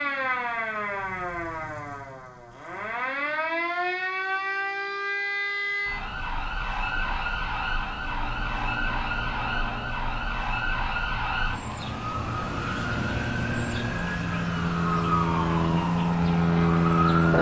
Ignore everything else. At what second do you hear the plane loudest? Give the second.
17 s.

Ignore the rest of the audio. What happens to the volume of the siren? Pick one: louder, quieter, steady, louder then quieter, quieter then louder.
steady.